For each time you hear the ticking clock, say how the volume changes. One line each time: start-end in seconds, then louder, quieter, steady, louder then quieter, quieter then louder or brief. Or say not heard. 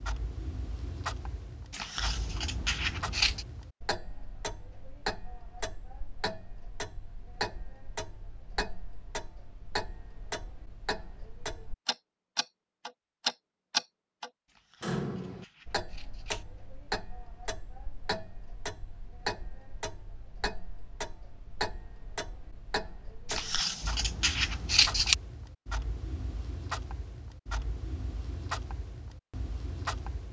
0.0-30.2 louder then quieter.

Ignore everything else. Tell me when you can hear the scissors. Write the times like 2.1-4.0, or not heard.
1.7-3.5, 14.7-16.4, 23.2-25.1.